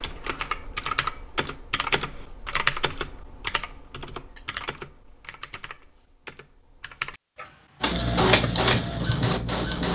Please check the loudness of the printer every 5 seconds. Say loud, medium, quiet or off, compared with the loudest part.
off, loud.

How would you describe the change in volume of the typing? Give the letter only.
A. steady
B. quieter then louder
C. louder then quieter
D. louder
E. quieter
B.